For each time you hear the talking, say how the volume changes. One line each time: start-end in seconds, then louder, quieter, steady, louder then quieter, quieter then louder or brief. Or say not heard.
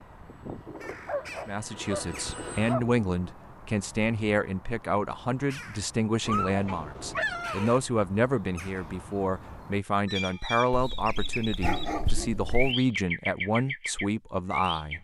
1.4-14.9 steady.